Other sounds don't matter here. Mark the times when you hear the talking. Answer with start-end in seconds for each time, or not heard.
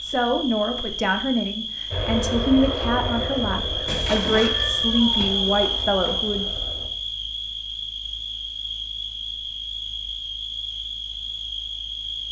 0.0-6.5.